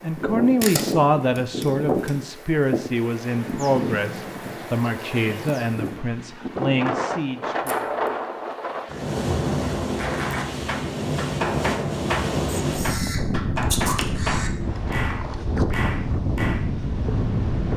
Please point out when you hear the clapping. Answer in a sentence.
The clapping can be heard from 9.8 to 16.6 s.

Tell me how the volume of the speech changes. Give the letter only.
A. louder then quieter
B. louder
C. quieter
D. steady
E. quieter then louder
C.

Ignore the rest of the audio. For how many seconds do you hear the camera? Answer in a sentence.
The camera can be heard for 4 seconds in total.